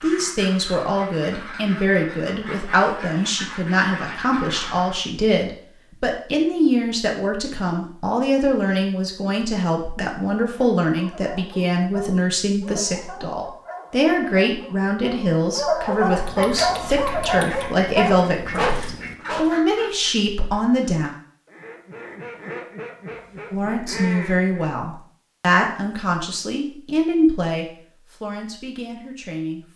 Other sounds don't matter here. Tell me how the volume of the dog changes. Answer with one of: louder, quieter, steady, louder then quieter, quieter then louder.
louder.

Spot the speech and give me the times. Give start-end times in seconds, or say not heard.
0.0-21.1, 23.5-29.6.